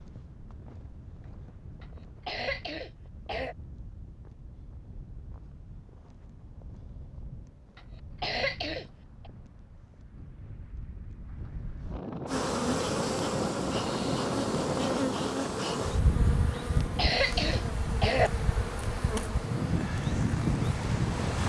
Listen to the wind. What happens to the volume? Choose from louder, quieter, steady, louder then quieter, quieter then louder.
louder.